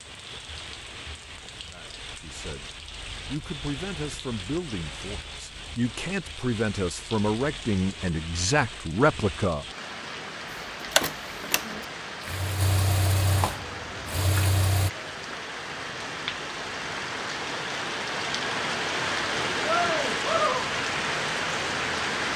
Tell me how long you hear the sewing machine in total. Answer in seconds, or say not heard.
4 s.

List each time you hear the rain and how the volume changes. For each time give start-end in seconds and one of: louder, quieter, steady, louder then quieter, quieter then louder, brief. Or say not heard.
0.0-22.3 louder.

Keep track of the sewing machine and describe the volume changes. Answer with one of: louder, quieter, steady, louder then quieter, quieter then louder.
louder.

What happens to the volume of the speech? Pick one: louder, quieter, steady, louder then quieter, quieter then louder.
louder.